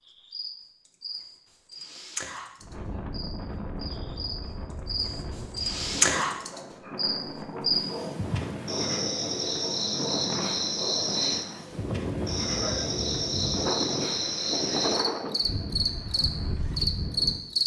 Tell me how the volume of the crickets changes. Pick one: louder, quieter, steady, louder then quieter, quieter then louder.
louder.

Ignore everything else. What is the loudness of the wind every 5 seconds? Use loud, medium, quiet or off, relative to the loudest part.
medium, medium, loud, loud.